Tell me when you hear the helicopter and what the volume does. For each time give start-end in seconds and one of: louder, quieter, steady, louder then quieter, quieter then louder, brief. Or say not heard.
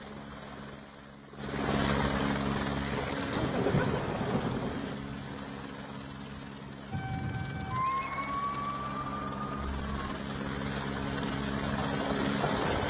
0.0-12.8 quieter then louder.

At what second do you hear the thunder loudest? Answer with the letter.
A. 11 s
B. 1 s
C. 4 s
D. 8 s
C.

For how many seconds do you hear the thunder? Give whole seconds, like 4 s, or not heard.
2 s.